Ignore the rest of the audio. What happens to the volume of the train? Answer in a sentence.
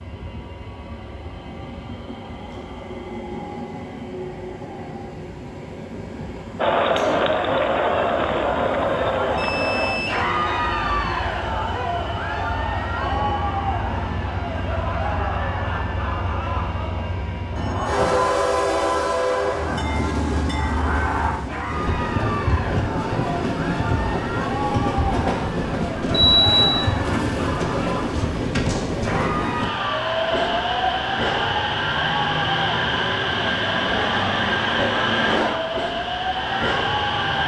The loudness of the train goes up.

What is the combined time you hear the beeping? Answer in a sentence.
The beeping can be heard for 2 seconds in total.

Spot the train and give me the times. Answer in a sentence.
The train can be heard from 0.0 to 37.4 s.